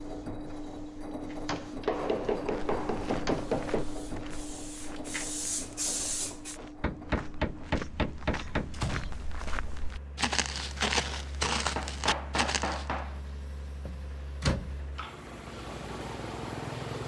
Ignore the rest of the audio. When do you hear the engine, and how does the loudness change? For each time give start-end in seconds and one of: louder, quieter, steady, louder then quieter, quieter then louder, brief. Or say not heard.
0.0-17.0 quieter then louder.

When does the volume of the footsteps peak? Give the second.
11 s.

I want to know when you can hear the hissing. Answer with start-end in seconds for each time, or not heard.
0.0-6.6, 12.9-17.0.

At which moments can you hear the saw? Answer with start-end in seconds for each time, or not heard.
not heard.